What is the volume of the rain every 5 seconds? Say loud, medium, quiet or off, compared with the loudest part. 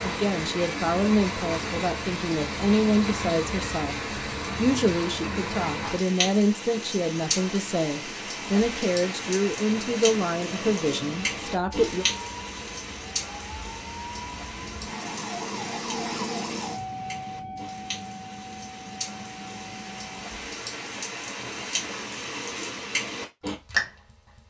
loud, loud, loud, medium, loud.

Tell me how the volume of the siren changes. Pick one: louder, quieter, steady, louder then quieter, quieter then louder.
louder then quieter.